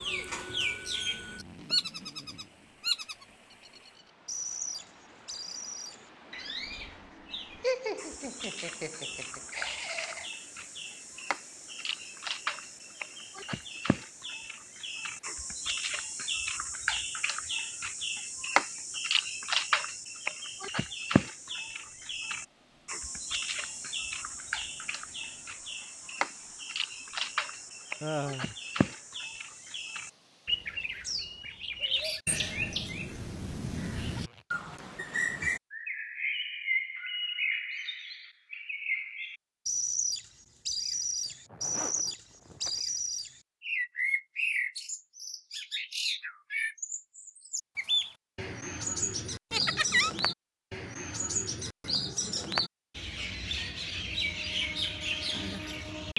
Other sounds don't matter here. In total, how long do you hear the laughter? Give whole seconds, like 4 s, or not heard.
4 s.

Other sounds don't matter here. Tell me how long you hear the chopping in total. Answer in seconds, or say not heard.
not heard.